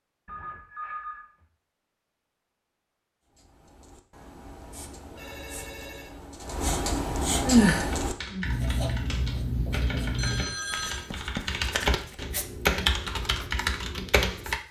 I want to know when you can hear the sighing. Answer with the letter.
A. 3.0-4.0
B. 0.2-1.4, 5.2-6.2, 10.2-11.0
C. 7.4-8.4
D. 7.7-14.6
C.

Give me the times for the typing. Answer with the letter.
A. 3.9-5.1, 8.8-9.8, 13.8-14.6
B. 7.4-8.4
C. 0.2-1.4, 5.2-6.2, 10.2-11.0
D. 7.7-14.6
D.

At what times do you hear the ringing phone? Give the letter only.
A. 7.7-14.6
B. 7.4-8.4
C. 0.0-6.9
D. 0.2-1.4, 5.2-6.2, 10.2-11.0
D.